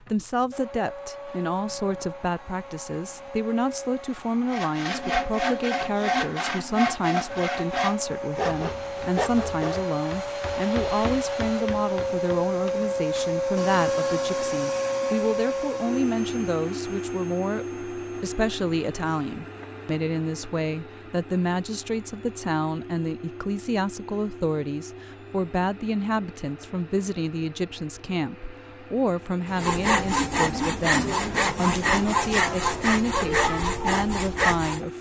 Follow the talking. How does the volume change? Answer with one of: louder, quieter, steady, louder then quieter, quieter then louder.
steady.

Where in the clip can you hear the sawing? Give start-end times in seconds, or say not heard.
4.5-9.9, 29.4-34.9.